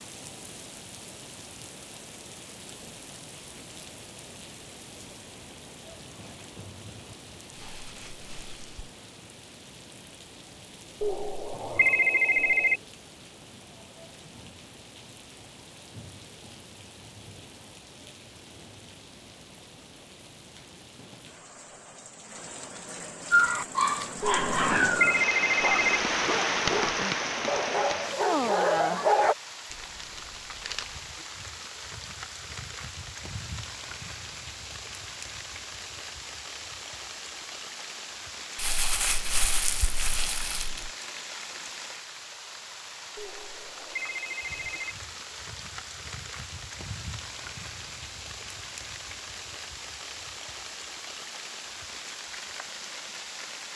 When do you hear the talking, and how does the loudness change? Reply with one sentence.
The talking can't be heard in this clip.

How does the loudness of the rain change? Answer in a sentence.
The volume of the rain goes up, then down.